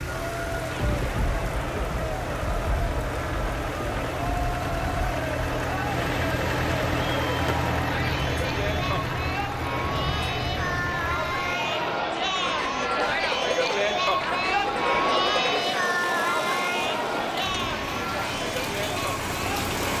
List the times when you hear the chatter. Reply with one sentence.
You can hear the chatter from 0.0 to 19.8 s.